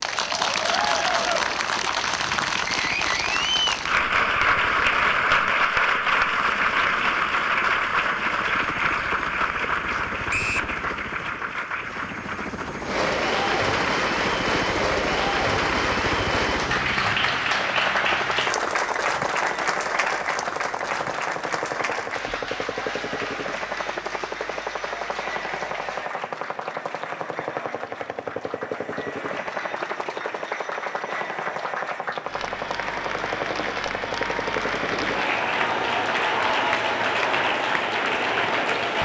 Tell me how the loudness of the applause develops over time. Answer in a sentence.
The volume of the applause goes down, then up.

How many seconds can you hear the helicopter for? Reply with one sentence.
The helicopter can be heard for 39 seconds in total.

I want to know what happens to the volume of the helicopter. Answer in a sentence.
The volume of the helicopter goes up.